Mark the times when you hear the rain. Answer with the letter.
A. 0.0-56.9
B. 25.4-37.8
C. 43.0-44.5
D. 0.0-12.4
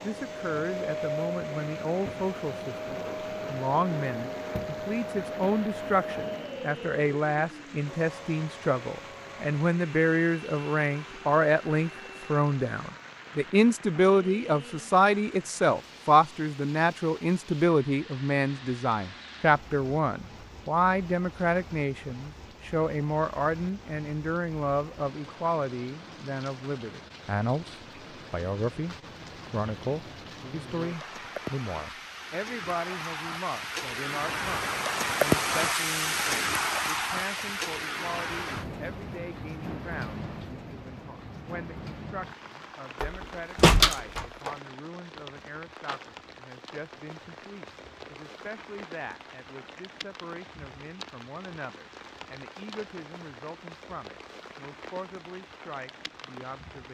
A.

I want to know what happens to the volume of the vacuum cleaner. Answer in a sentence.
The loudness of the vacuum cleaner goes down.